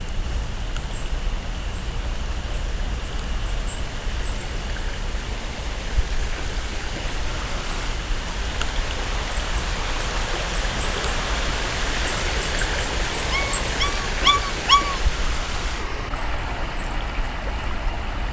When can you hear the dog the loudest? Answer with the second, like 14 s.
15 s.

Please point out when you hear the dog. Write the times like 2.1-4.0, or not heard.
13.3-15.0.